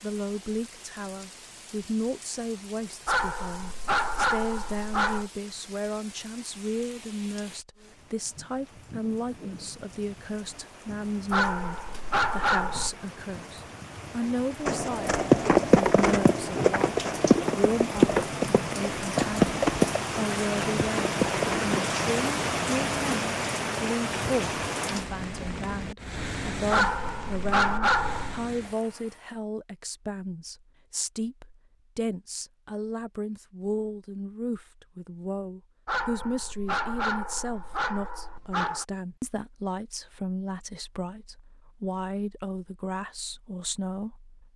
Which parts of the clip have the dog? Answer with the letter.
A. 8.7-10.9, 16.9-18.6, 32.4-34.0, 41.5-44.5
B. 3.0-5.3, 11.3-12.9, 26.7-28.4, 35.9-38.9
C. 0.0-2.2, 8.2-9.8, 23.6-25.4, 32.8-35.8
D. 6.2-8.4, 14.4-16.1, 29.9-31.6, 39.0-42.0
B.